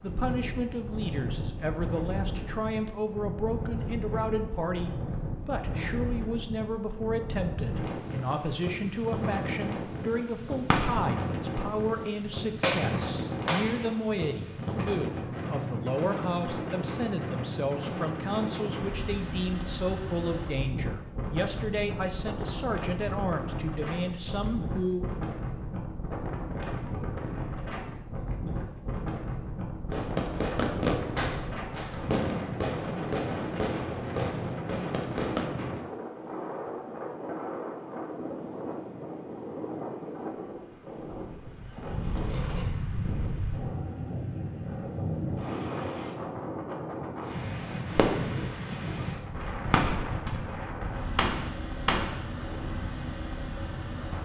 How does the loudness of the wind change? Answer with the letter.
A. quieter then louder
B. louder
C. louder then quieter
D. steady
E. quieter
D.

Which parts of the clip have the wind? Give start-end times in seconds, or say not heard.
0.0-54.1.